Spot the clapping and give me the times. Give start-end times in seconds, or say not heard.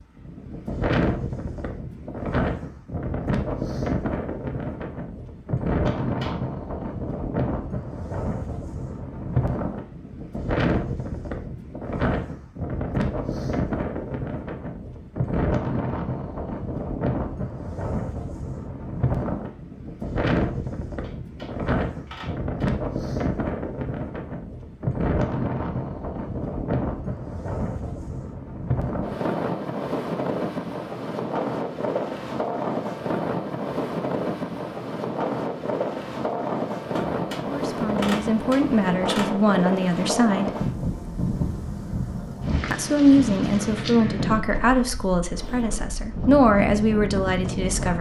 not heard.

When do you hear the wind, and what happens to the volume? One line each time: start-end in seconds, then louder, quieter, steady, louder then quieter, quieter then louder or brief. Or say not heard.
0.0-47.9 steady.